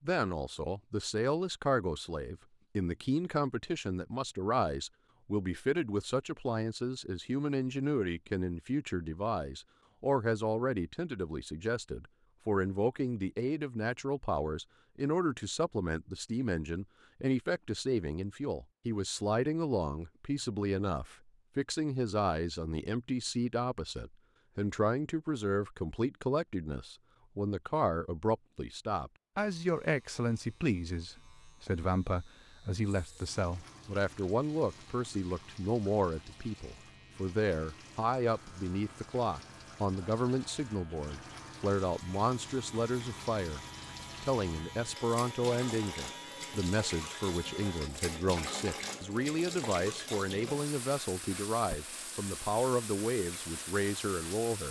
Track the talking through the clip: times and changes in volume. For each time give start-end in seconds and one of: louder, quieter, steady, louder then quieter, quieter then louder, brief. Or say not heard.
0.0-43.6 steady
44.2-54.6 steady.